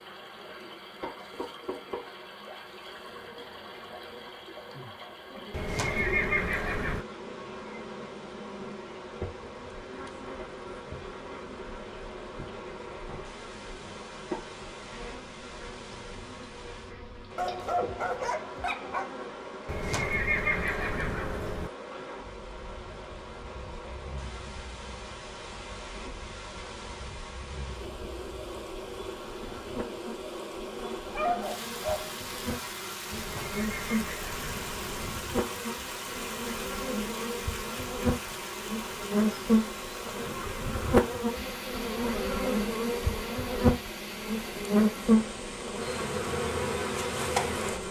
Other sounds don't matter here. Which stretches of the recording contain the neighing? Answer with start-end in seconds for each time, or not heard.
5.5-7.0, 19.6-21.7, 33.1-35.1.